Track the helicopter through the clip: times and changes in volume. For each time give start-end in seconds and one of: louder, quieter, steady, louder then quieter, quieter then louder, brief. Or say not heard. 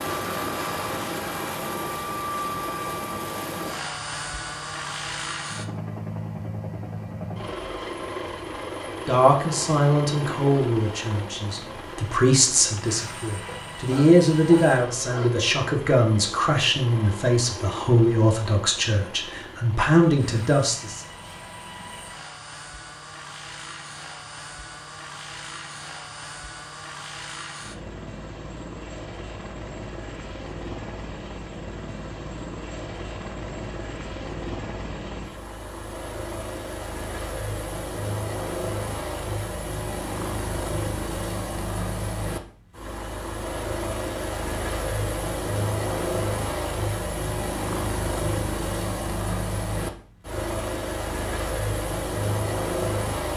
0.0-53.3 quieter then louder.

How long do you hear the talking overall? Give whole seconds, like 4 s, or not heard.
12 s.